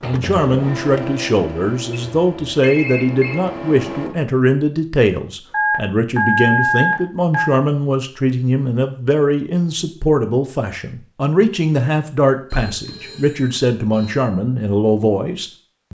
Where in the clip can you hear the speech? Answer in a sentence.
You can hear the speech from 0.0 to 15.8 s.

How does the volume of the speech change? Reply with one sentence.
The loudness of the speech stays about the same.